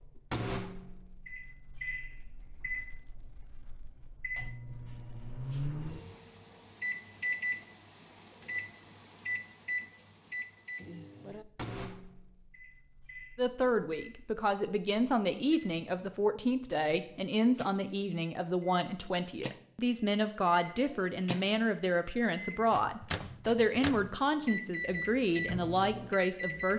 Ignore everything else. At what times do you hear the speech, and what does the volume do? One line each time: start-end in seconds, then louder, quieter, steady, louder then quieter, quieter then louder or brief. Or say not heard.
13.3-26.7 steady.